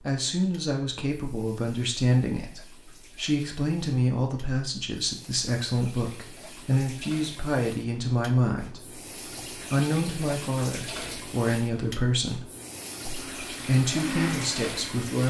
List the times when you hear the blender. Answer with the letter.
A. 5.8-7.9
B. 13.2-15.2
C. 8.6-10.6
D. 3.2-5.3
B.